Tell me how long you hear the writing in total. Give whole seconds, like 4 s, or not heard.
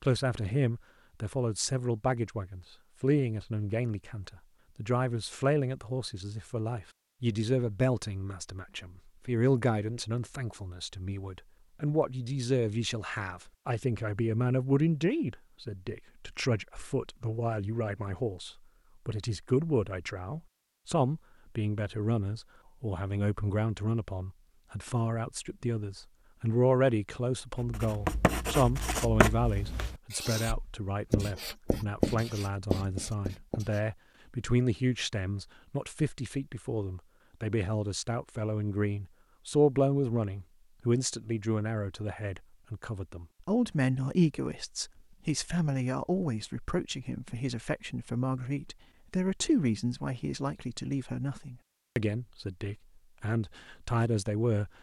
6 s.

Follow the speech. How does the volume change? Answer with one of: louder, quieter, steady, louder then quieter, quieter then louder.
steady.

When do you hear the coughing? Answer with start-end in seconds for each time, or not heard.
not heard.